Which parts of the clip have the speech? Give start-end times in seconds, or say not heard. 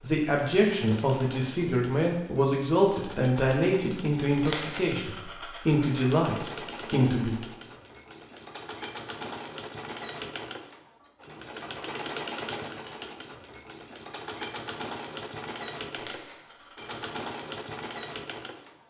0.0-7.3.